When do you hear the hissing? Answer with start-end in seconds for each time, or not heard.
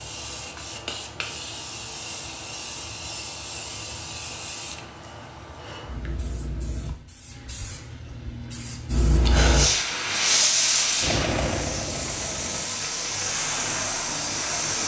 0.0-14.8.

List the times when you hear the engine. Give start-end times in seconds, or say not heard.
11.0-12.7.